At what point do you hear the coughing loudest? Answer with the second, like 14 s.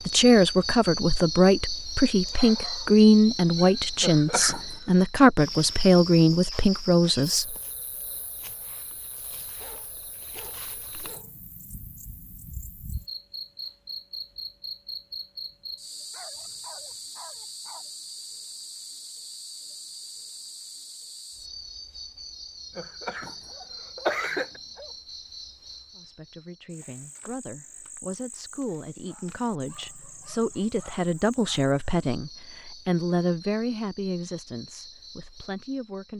24 s.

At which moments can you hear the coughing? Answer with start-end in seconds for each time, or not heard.
4.0-5.0, 22.8-24.6.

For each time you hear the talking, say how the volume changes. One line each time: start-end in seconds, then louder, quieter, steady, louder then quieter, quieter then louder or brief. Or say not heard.
0.1-7.5 steady
25.9-36.1 louder then quieter.